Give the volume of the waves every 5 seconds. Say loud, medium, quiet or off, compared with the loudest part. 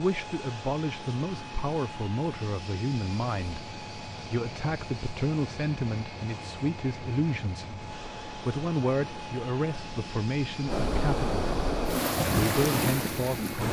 quiet, quiet, loud.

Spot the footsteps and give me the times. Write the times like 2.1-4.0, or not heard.
not heard.